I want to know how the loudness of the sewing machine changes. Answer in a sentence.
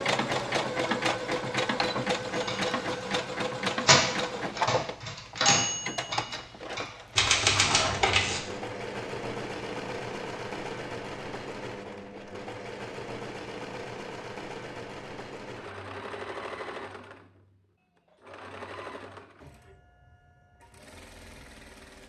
The volume of the sewing machine goes down.